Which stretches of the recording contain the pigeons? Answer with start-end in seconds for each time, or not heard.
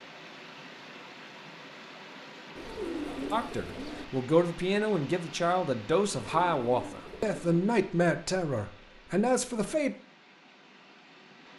2.5-4.0, 6.1-7.6.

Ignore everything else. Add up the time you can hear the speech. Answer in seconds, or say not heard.
7 s.